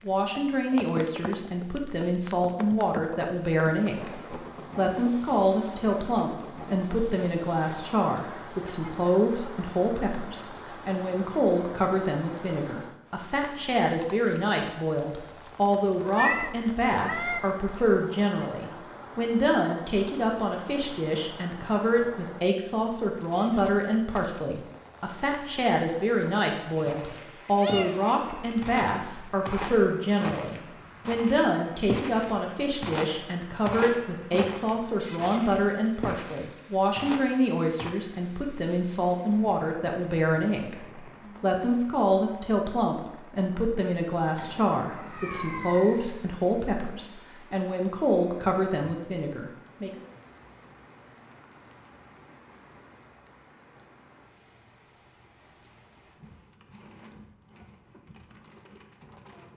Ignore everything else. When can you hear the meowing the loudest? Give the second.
16 s.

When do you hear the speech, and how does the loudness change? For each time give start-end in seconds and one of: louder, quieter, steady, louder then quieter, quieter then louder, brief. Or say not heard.
0.1-50.0 steady.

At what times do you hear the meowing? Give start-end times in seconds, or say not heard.
15.9-17.4, 27.1-28.6, 44.4-46.4.